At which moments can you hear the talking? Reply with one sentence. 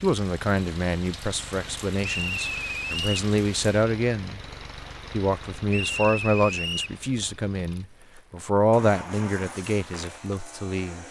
The talking can be heard from 0.0 to 4.4 s and from 5.1 to 11.0 s.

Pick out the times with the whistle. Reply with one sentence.
The whistle can be heard from 2.0 to 3.2 s and from 5.7 to 7.0 s.